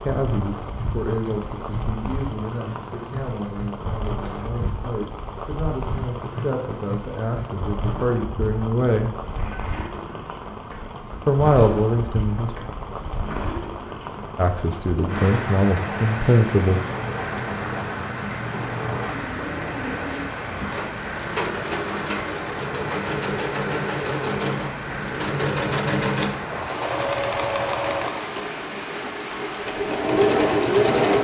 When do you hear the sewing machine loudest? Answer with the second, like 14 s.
31 s.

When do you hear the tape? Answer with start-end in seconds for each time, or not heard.
not heard.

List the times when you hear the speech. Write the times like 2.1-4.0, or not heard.
0.0-9.1, 11.2-12.7, 14.3-16.8.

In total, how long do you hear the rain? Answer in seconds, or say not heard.
31 s.